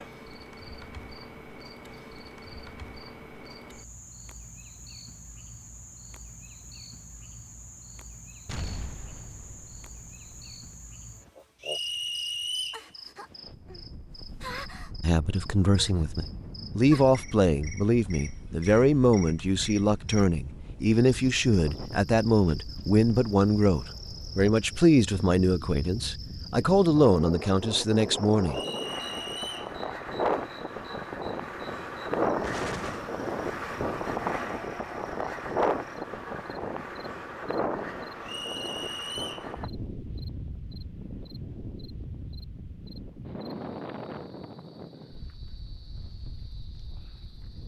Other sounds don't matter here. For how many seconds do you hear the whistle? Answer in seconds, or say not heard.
4 s.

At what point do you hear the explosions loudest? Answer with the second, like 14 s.
33 s.